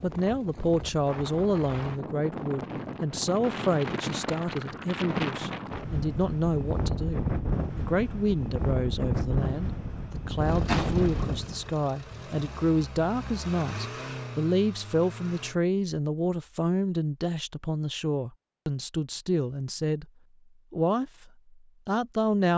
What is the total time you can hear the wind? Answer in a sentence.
You can hear the wind for 12 seconds altogether.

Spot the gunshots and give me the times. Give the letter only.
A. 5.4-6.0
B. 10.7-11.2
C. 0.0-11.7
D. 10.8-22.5
B.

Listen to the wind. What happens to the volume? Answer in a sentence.
The loudness of the wind goes up.